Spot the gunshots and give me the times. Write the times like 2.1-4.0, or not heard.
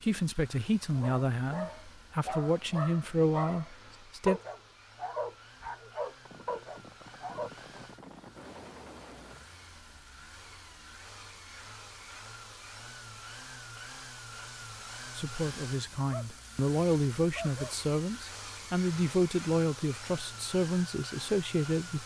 6.2-9.4.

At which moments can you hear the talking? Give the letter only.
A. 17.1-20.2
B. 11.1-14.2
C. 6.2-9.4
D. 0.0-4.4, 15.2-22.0
D.